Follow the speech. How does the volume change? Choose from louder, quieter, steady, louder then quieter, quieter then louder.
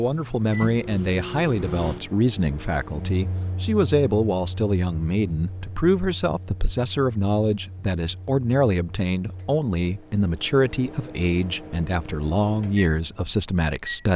steady.